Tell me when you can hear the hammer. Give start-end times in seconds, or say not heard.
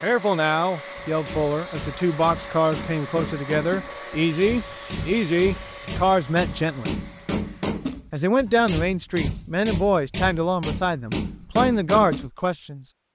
1.1-12.3.